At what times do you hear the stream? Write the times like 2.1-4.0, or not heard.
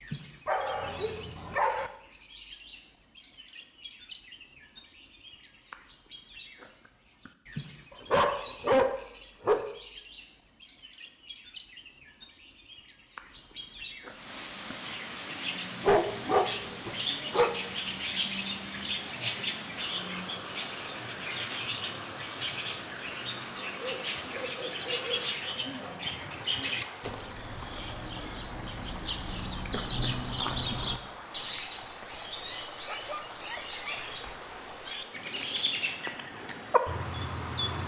14.1-37.8.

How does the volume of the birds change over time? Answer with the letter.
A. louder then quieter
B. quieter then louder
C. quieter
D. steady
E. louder
E.